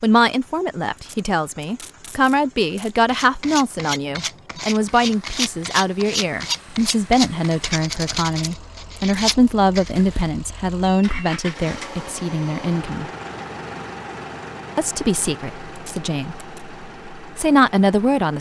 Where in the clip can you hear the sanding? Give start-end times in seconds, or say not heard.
3.0-10.3.